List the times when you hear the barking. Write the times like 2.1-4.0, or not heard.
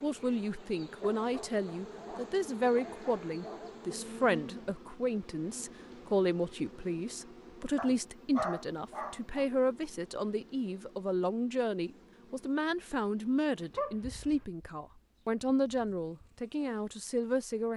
1.0-3.8, 7.8-9.4, 13.7-14.4.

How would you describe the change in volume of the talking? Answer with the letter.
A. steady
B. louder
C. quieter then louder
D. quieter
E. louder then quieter
A.